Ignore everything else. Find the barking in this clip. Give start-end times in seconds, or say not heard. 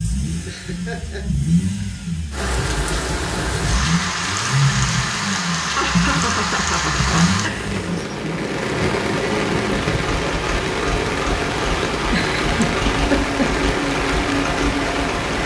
not heard.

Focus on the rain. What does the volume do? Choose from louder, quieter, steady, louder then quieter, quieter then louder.
steady.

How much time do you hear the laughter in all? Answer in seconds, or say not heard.
4 s.